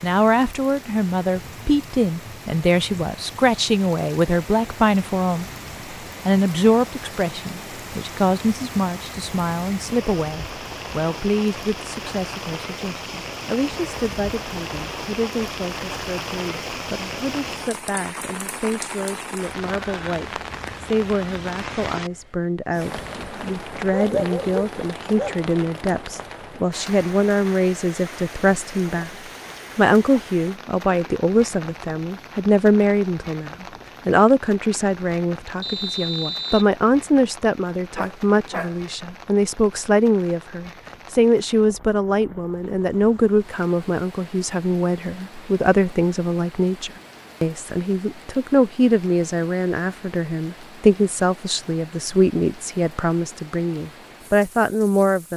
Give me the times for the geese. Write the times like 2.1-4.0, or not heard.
not heard.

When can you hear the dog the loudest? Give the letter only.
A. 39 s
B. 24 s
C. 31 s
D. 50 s
B.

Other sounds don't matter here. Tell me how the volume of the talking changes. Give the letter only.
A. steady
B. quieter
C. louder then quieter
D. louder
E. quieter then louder
E.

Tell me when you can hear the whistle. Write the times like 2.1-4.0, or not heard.
35.6-36.7.